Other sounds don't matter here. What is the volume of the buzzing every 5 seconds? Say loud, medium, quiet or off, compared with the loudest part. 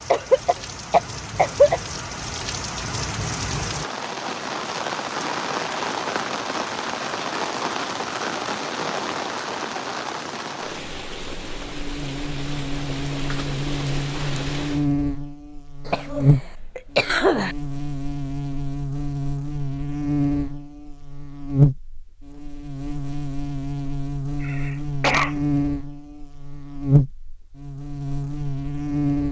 off, off, loud, loud, loud, loud.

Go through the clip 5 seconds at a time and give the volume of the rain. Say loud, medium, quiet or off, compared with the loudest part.
loud, loud, medium, off, off, off.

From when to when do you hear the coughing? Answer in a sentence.
You can hear the coughing from 0.1 to 1.8 s, from 15.8 to 17.6 s and from 24.4 to 25.4 s.